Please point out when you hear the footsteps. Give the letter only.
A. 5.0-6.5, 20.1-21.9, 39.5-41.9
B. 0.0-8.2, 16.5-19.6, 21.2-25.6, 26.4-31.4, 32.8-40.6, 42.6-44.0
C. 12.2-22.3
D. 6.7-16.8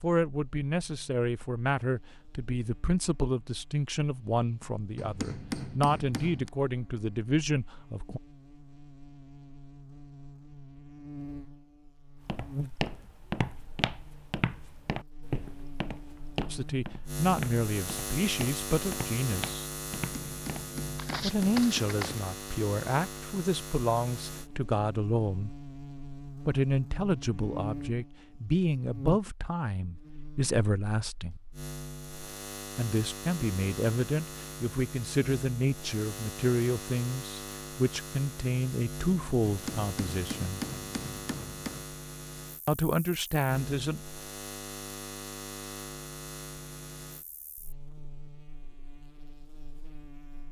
C.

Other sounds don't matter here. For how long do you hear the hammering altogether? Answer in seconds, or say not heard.
6 s.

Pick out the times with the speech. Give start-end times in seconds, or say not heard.
0.0-8.2, 16.5-19.6, 21.2-25.6, 26.4-31.4, 32.8-40.6, 42.6-44.0.